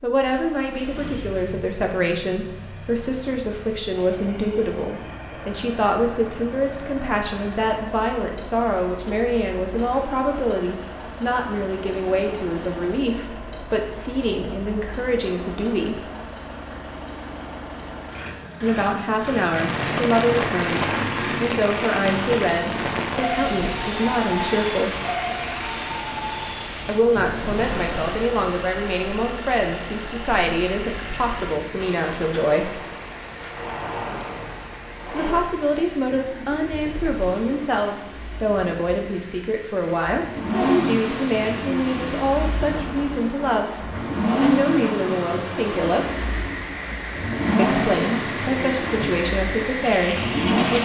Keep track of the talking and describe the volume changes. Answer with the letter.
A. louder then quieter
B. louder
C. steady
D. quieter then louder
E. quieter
C.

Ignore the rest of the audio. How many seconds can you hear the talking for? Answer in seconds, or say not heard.
43 s.